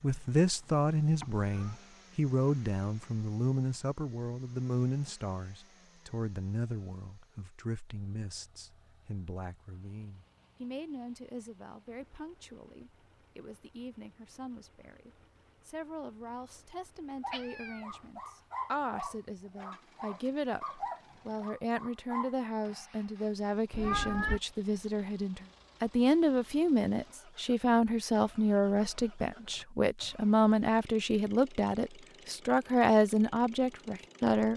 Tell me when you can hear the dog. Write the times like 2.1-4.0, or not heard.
17.2-22.4.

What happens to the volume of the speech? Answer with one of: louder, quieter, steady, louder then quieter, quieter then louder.
quieter then louder.